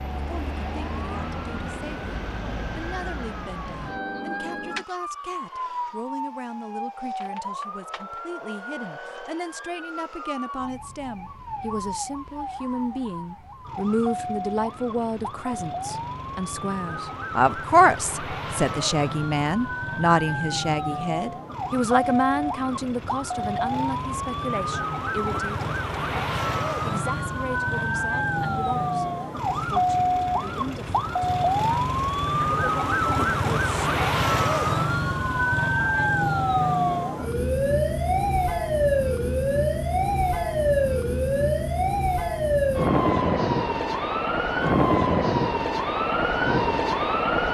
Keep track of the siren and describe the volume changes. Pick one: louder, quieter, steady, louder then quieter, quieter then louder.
louder.